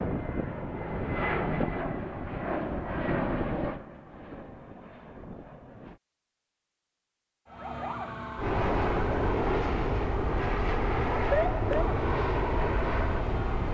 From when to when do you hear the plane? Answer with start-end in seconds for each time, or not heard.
0.0-6.0, 8.3-13.7.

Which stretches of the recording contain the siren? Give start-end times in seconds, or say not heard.
7.5-13.7.